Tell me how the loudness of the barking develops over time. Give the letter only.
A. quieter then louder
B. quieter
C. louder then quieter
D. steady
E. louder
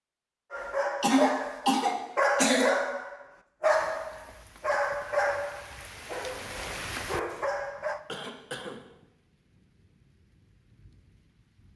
B.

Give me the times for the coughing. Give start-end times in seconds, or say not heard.
1.0-2.8, 8.1-9.1.